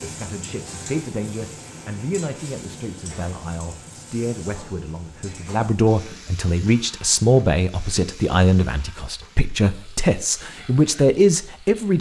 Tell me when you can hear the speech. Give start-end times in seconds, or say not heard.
0.0-11.9.